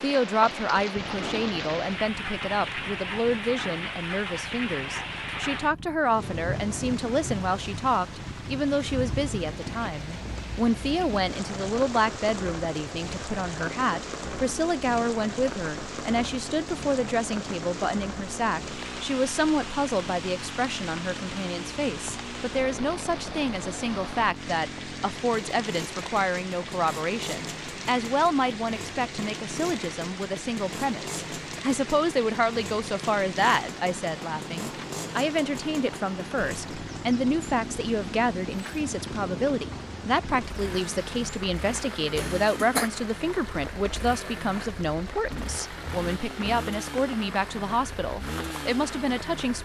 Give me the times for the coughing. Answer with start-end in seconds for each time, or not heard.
42.1-42.9.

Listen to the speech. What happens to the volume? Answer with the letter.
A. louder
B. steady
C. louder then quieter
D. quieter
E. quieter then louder
B.